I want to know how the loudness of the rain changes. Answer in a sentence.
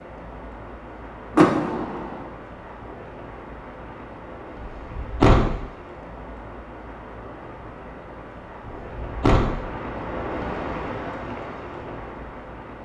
The volume of the rain goes up.